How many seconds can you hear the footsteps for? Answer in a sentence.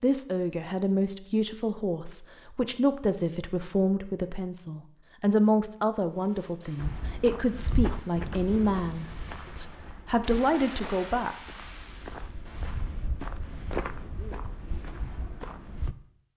The footsteps can be heard for 9 seconds in total.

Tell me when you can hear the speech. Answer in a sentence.
You can hear the speech from 0.0 to 11.3 s.